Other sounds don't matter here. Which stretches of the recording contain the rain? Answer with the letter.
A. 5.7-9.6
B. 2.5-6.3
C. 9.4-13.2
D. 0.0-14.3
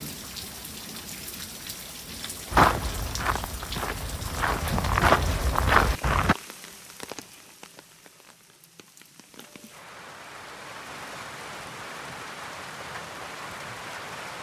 D.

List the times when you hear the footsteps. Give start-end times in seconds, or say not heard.
2.5-6.3.